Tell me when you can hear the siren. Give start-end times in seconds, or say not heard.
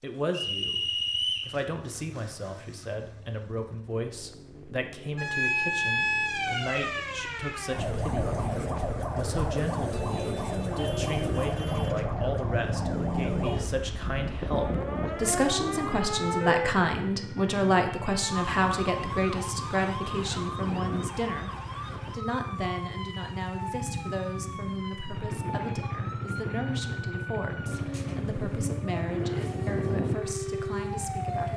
5.2-31.5.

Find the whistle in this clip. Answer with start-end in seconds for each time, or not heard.
0.3-1.6.